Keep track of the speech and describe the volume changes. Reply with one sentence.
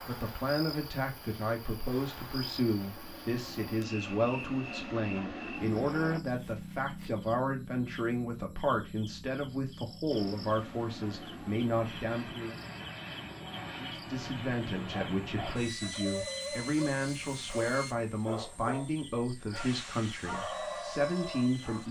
The volume of the speech stays about the same.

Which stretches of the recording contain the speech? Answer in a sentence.
The speech can be heard from 0.1 to 12.5 s and from 13.8 to 21.8 s.